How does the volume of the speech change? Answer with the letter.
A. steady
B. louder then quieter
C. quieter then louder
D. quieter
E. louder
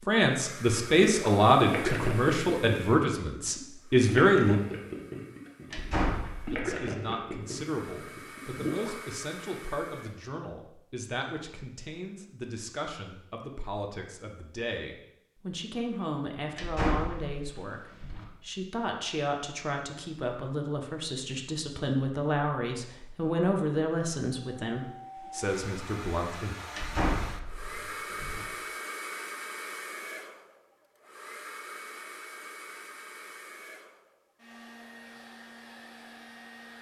C.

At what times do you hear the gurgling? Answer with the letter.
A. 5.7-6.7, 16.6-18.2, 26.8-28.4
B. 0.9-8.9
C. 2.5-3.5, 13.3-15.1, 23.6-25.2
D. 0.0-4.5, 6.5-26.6
B.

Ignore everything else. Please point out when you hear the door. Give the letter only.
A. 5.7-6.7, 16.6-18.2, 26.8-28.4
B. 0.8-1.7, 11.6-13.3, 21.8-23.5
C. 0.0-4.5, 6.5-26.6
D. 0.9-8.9
A.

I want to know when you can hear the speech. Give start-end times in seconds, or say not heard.
0.0-4.5, 6.5-26.6.